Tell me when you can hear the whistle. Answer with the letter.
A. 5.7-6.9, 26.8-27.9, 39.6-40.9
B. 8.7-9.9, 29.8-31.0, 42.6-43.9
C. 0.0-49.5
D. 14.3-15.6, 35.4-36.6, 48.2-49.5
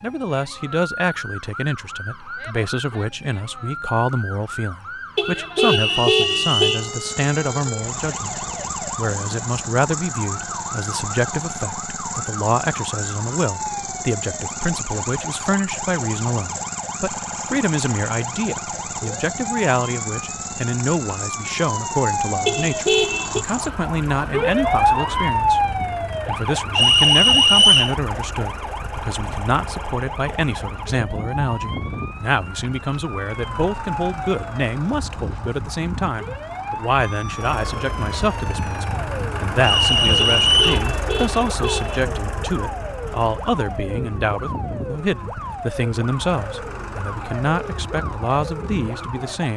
A.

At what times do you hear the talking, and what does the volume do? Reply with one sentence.
The talking can be heard from 0.0 to 49.5 s, at a steady volume.